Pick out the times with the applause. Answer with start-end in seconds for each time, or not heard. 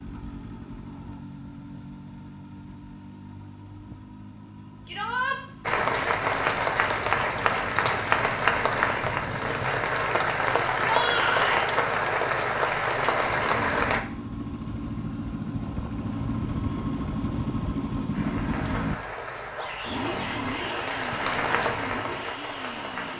5.7-14.1, 18.1-23.1.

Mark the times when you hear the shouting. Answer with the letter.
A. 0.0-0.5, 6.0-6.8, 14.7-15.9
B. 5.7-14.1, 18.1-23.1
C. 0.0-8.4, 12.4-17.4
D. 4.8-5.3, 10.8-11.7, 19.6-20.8
D.